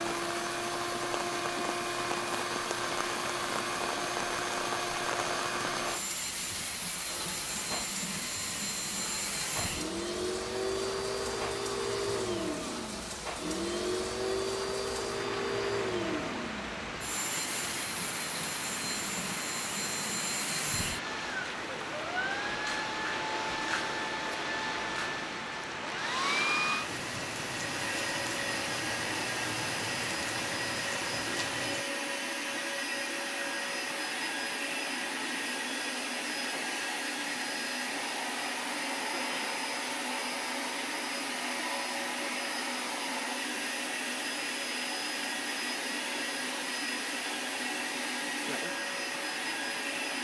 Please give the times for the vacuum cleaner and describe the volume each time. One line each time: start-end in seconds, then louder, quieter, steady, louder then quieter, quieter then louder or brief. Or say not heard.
0.0-50.2 steady.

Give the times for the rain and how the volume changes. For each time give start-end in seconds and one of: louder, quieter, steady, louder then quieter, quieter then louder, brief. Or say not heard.
0.0-31.9 steady.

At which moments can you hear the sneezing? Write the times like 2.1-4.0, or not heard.
39.1-39.6.